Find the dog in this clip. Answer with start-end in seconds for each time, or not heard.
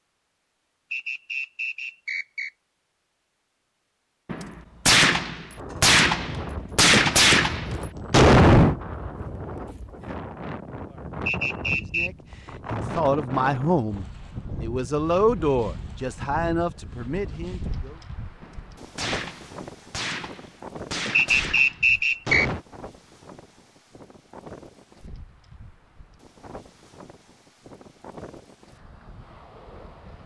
not heard.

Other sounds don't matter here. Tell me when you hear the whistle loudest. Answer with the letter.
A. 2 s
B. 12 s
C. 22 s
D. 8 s
C.